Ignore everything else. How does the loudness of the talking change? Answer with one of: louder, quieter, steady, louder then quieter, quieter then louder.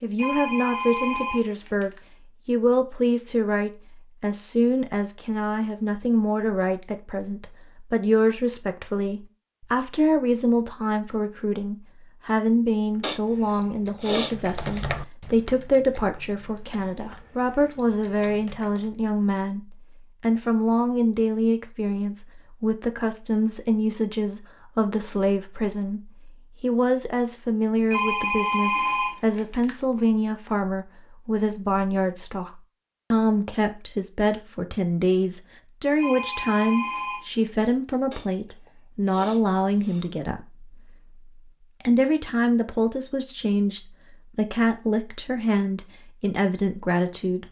steady.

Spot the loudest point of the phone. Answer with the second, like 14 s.
29 s.